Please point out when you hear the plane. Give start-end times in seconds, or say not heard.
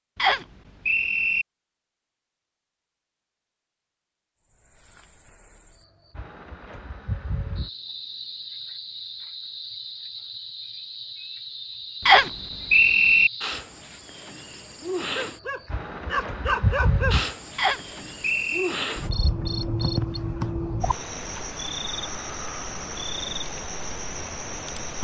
not heard.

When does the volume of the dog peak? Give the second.
17 s.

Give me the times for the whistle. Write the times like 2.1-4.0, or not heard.
0.1-1.4, 12.1-13.3, 17.6-18.8.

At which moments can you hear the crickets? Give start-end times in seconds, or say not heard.
4.3-24.9.